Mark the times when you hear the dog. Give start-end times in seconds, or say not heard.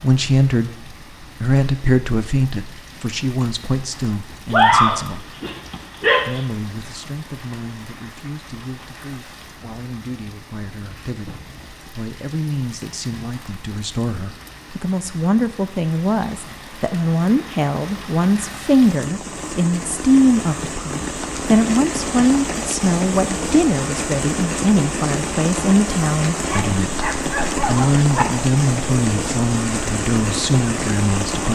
4.5-6.5, 26.5-28.2.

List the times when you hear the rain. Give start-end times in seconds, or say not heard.
0.0-31.5.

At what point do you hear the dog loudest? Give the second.
5 s.